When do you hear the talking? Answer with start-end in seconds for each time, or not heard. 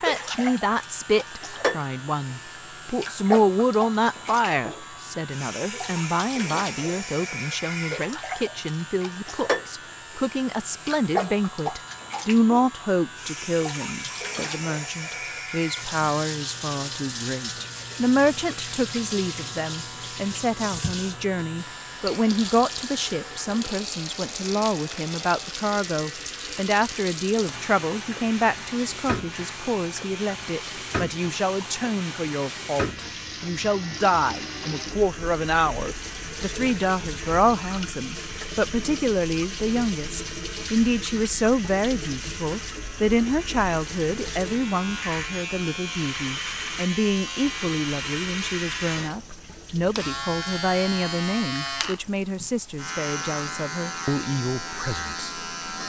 0.0-55.4.